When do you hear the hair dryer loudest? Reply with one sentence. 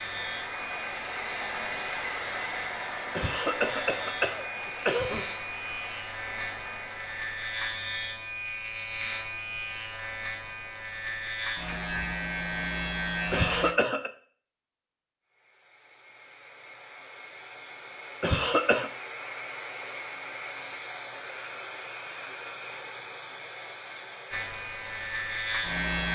The volume of the hair dryer peaks at 2 seconds.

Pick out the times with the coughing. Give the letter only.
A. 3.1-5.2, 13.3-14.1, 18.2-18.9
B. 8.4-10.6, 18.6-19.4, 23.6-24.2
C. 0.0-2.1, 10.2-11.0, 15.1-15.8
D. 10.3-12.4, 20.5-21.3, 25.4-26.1
A.